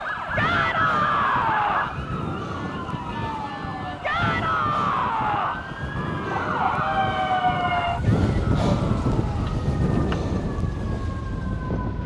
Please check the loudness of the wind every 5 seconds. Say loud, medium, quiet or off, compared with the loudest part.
medium, loud, loud.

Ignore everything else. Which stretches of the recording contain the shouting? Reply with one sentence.
The shouting can be heard from 0.3 to 1.9 s, from 4.0 to 5.7 s and from 8.0 to 9.6 s.